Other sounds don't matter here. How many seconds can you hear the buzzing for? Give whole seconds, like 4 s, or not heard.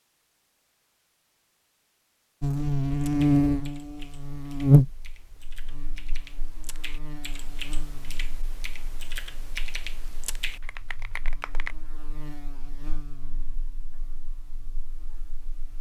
13 s.